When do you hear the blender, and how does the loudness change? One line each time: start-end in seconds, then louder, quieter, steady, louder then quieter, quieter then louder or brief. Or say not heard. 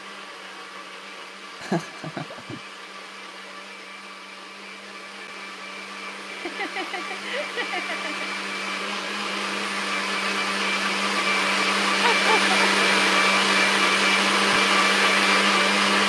0.0-16.0 louder.